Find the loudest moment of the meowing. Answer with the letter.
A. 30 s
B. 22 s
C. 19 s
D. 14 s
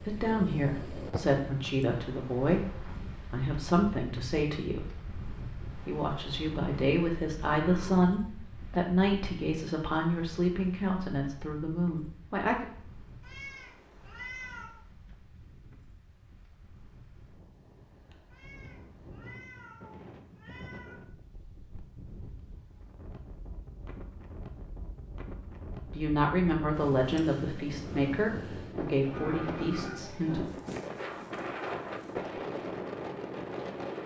D.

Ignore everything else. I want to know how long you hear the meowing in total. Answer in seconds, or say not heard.
4 s.